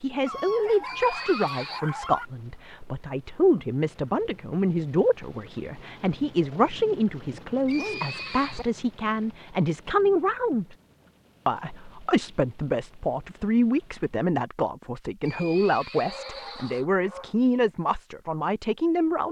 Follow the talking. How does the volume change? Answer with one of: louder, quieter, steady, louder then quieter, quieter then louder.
steady.